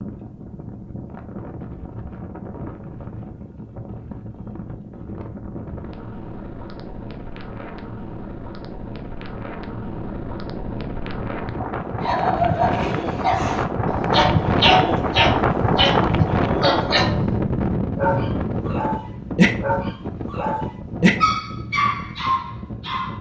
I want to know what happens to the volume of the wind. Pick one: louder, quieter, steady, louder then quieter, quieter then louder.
louder then quieter.